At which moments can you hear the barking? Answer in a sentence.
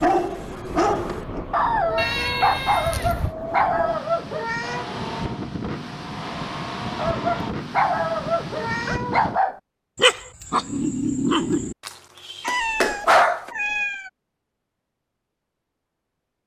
You can hear the barking from 0.0 to 4.8 s and from 7.0 to 13.5 s.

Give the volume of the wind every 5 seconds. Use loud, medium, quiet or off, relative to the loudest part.
loud, loud, off, off.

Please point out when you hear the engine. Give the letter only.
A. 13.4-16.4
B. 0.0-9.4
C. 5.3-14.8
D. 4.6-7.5
D.